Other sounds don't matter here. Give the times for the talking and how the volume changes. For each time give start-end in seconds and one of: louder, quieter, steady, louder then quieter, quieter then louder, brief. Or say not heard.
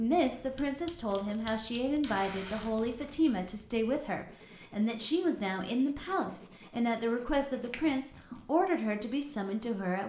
0.0-10.0 steady.